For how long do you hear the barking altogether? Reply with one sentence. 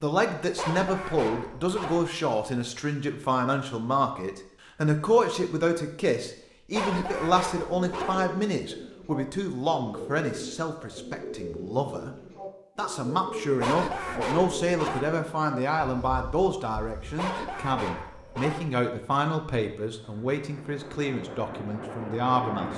The barking can be heard for 6 seconds in total.